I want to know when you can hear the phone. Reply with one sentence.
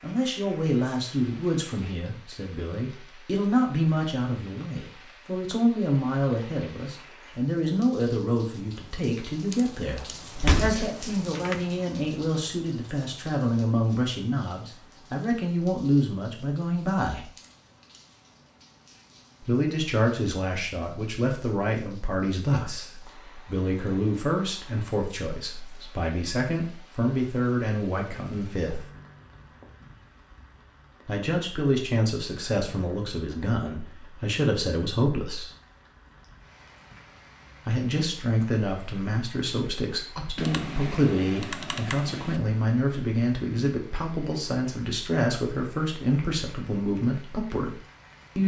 You can't hear the phone here.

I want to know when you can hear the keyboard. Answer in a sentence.
You can hear the keyboard from 10.6 to 11.7 s and from 40.4 to 42.4 s.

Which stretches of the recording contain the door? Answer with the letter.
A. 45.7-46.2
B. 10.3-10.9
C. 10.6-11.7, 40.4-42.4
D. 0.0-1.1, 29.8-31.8
B.